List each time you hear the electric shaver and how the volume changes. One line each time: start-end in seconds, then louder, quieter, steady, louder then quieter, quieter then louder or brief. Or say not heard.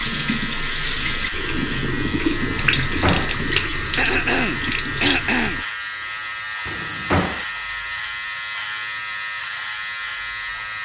0.0-10.8 steady.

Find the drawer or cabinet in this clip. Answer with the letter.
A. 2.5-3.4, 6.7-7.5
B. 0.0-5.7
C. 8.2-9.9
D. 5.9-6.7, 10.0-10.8
A.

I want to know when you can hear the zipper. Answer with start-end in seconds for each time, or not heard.
not heard.